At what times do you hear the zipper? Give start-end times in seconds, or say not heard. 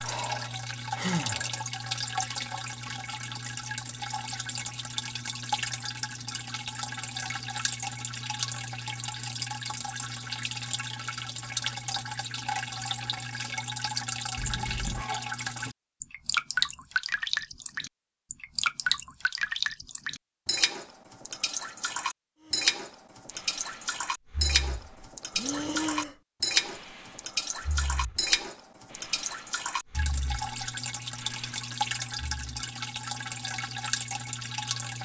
14.3-15.1.